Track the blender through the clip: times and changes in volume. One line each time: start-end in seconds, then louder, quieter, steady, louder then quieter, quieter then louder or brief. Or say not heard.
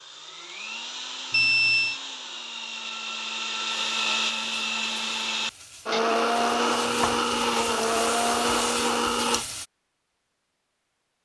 0.0-9.4 louder.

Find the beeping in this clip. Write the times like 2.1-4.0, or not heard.
1.3-2.0.